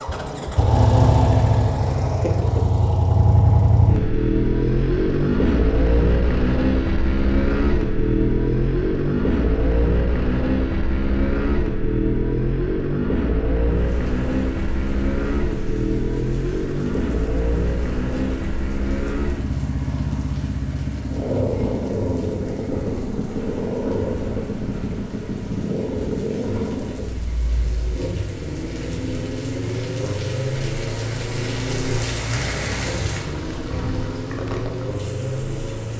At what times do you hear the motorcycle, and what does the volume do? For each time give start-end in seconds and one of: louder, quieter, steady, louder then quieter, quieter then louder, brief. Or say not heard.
0.0-35.9 quieter.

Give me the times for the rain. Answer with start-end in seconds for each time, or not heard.
13.7-35.9.